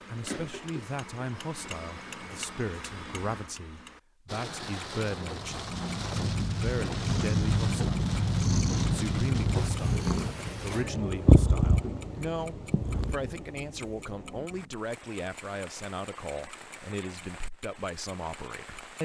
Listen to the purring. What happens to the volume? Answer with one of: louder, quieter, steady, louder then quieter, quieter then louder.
louder then quieter.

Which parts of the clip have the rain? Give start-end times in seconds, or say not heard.
4.2-18.9.